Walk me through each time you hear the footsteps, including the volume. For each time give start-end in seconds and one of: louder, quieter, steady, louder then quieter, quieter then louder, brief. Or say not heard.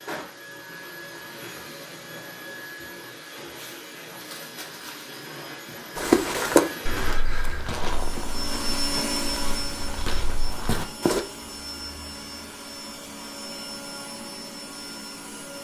6.0-11.2 quieter then louder.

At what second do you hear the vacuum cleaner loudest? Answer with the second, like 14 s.
9 s.